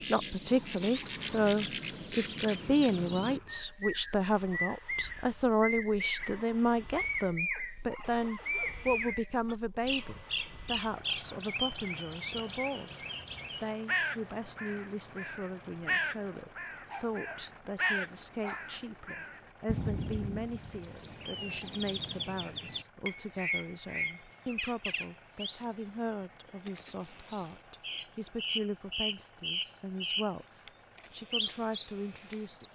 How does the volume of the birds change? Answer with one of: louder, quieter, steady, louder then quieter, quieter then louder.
steady.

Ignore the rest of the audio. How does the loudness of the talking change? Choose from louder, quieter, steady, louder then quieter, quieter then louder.
quieter.